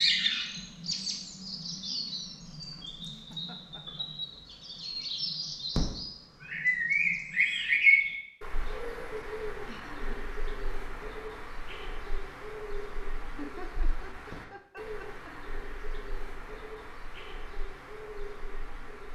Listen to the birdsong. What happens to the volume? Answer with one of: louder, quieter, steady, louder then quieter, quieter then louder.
louder then quieter.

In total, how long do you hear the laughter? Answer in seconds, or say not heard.
4 s.